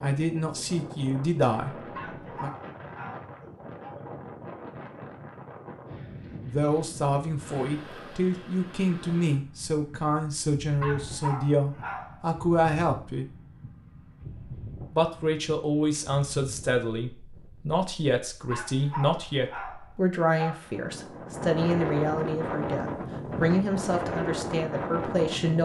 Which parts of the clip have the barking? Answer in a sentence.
The barking can be heard from 1.9 to 4.0 s, from 10.8 to 12.2 s and from 18.5 to 20.8 s.